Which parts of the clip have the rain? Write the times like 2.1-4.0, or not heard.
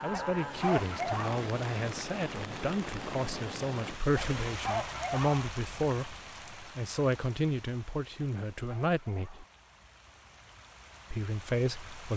0.0-12.1.